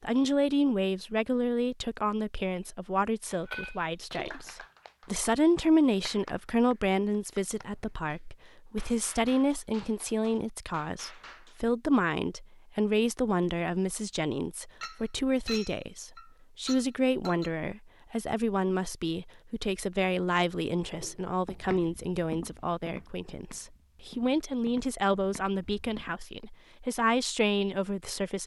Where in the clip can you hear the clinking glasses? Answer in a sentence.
The clinking glasses can be heard from 3.2 to 4.5 s and from 14.8 to 17.5 s.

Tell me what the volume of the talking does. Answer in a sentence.
The loudness of the talking stays about the same.